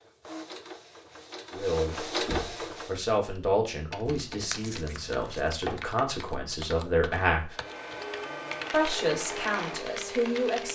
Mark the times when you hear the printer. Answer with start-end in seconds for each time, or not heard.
0.0-3.0, 7.5-10.7.